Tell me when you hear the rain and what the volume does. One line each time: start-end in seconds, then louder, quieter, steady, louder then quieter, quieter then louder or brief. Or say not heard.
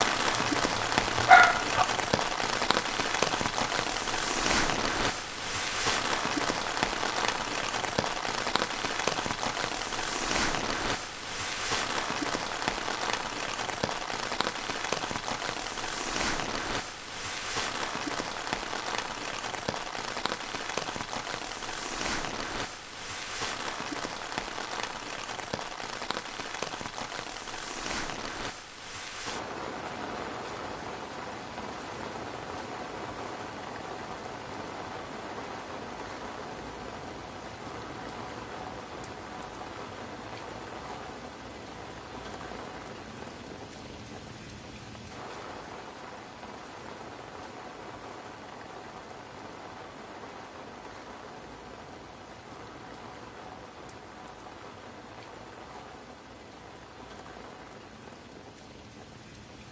0.0-59.6 quieter.